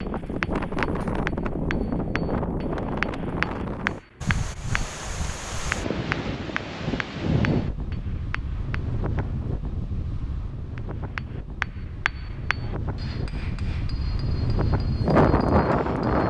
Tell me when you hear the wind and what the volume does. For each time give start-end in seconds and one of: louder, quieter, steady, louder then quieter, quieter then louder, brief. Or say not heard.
0.0-16.2 quieter then louder.